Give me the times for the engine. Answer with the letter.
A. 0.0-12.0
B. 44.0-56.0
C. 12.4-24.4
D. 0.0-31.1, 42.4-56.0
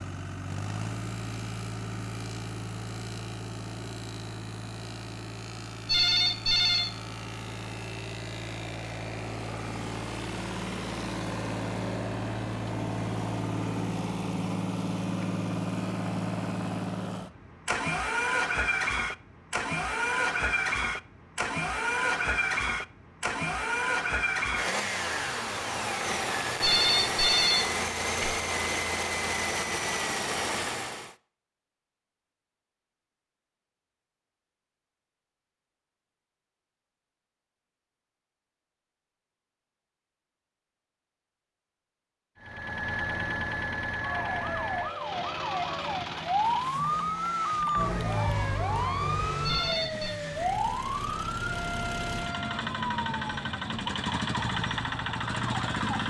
D.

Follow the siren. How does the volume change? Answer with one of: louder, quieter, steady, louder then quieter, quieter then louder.
quieter.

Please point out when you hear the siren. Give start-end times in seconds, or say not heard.
44.0-56.0.